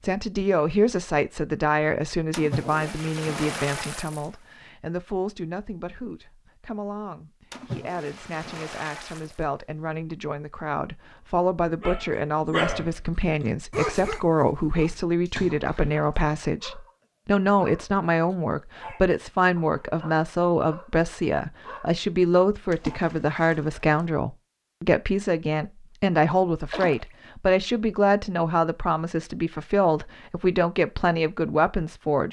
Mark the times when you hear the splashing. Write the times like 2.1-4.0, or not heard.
2.3-4.2, 7.5-9.4, 15.2-16.2, 22.7-23.9, 26.6-27.1.